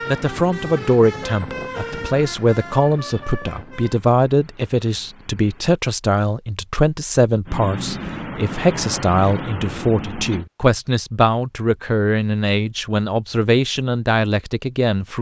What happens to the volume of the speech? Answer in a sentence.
The volume of the speech stays about the same.